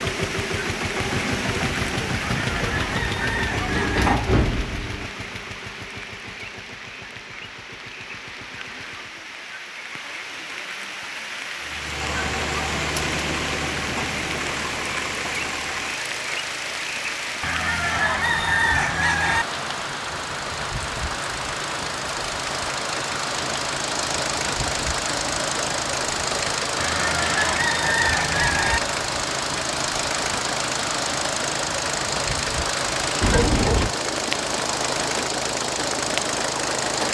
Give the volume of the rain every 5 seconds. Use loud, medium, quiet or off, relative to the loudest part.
loud, medium, loud, loud, loud, loud, loud, loud.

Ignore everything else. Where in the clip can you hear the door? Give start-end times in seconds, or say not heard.
2.5-5.0, 33.2-34.0.